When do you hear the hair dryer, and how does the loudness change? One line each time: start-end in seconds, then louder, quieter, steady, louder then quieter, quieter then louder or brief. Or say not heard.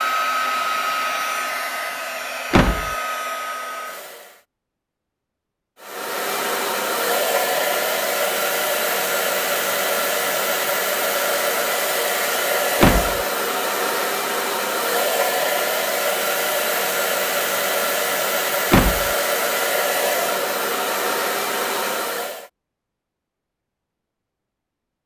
0.0-4.5 quieter
5.8-22.5 steady.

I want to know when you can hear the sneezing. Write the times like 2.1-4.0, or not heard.
not heard.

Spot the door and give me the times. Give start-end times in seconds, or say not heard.
2.5-3.0, 12.8-13.2, 18.7-19.1.